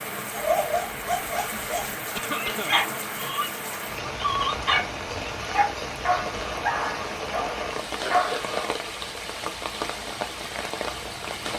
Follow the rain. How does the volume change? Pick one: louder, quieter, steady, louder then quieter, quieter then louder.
steady.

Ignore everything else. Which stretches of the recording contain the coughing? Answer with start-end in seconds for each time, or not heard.
2.1-2.9, 8.0-8.6.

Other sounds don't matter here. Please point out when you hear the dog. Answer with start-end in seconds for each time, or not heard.
0.3-8.7.